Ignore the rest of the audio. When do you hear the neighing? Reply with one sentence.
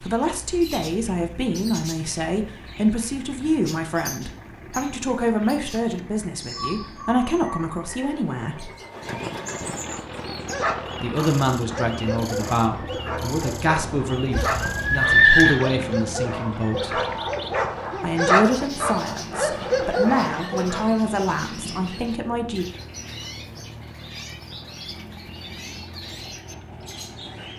You can hear the neighing from 14.4 to 15.6 s.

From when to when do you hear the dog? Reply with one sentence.
The dog can be heard from 9.8 to 20.9 s.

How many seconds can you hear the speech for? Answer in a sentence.
The speech can be heard for 19 seconds in total.